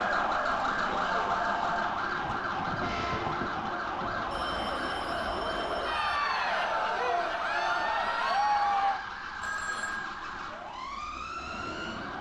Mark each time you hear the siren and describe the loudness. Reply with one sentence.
You can hear the siren from 0.0 to 12.1 s, getting quieter.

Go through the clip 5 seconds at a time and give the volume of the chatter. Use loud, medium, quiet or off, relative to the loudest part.
medium, loud, off.